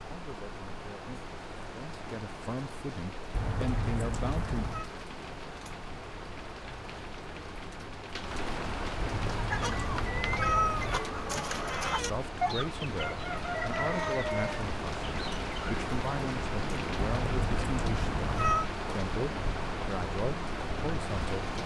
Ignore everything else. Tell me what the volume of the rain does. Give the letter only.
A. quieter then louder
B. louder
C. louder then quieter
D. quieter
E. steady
B.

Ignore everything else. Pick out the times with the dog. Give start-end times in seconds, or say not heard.
not heard.